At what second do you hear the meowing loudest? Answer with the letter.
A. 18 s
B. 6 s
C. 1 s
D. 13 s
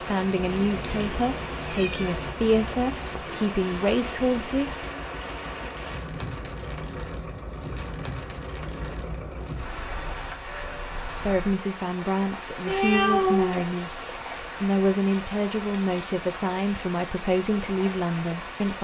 D.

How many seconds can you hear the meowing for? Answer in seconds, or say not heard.
3 s.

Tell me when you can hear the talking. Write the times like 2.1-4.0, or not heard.
0.1-4.8, 11.2-18.7.